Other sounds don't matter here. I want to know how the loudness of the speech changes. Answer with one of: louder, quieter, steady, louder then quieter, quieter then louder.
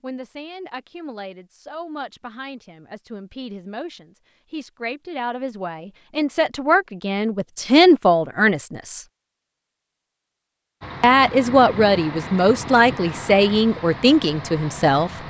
louder.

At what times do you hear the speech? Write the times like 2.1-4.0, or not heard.
0.0-9.0, 11.0-15.2.